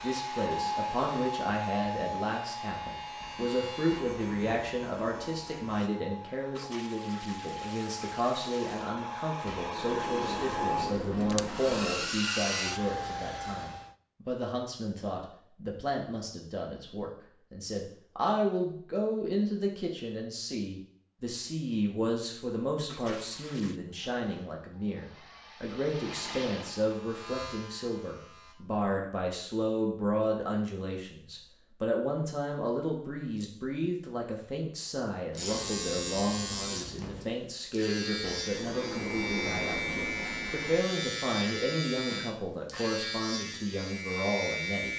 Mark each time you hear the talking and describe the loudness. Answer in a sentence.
The talking can be heard from 0.0 to 44.9 s, at a steady volume.